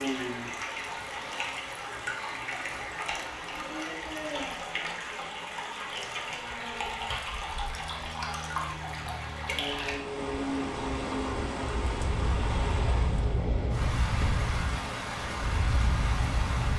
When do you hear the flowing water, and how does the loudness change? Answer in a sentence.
The flowing water can be heard from 0.0 to 16.7 s, at a steady volume.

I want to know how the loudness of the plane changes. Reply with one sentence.
The volume of the plane goes up.